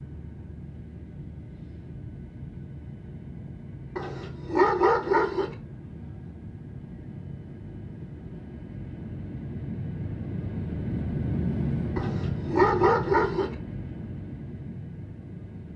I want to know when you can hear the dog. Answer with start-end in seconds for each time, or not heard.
4.0-5.5, 11.9-13.6.